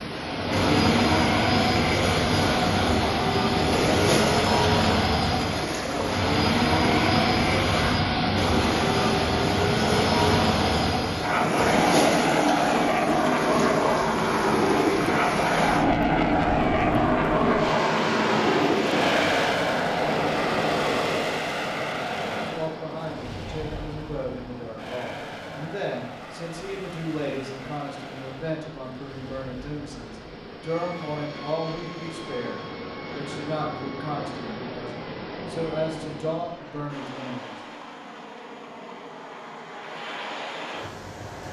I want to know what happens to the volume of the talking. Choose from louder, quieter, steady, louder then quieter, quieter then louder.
steady.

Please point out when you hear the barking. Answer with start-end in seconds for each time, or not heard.
not heard.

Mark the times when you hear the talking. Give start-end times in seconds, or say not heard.
22.4-37.5.